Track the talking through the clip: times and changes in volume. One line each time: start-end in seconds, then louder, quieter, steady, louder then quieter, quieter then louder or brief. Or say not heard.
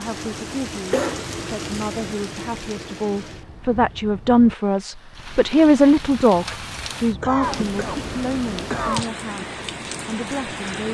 0.0-10.8 louder then quieter.